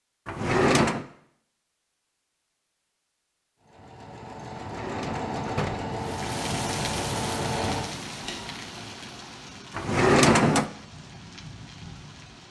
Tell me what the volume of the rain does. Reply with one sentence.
The volume of the rain goes down.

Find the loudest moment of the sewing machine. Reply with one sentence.
The loudest moment of the sewing machine is at 7 seconds.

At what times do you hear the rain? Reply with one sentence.
The rain can be heard from 6.0 to 12.4 s.